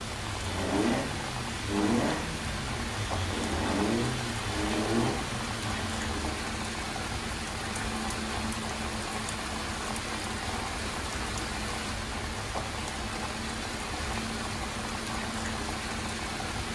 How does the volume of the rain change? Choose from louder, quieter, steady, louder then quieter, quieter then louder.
steady.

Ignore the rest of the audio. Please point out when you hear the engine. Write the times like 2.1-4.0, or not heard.
0.0-6.5.